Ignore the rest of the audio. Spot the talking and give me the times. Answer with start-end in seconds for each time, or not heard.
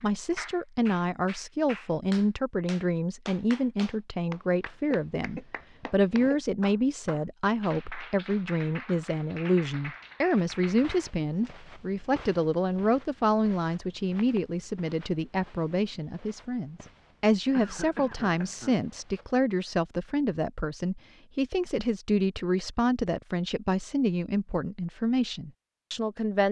0.0-26.4.